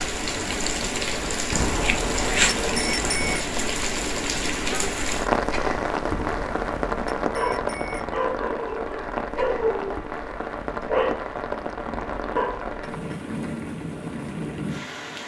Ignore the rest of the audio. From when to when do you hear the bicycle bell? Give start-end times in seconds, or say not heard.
1.5-3.5, 6.1-8.1, 11.8-13.1.